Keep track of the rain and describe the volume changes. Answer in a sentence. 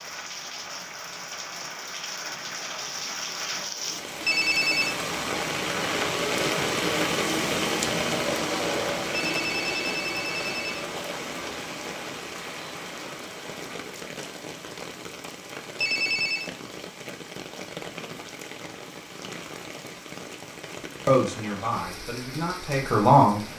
The volume of the rain goes up, then down.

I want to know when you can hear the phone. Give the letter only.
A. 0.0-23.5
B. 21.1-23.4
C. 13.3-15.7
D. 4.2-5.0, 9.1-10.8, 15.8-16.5
D.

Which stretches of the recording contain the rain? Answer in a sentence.
You can hear the rain from 0.0 to 23.5 s.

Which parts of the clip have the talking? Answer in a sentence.
You can hear the talking from 21.1 to 23.4 s.